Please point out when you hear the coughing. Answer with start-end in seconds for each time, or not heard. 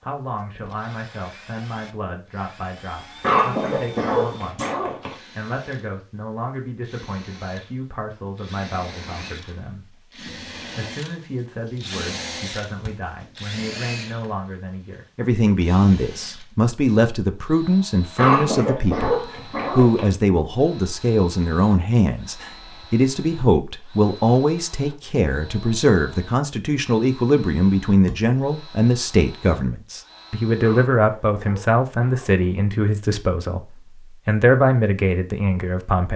3.2-5.2, 18.1-20.1, 30.6-32.5.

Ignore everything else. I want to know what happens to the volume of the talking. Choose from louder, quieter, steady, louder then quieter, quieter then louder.
louder.